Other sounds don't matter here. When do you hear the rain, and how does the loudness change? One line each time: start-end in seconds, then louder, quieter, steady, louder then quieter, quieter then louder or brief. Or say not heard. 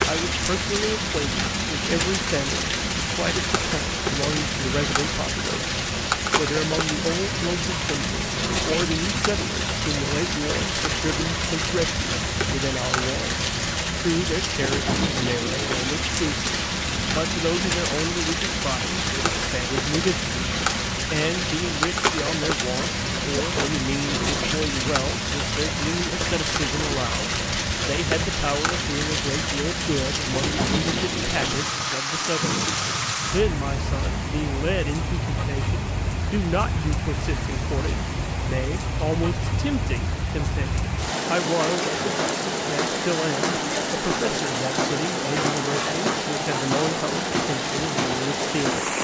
0.0-48.9 steady.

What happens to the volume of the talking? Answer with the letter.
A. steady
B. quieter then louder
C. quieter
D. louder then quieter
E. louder
A.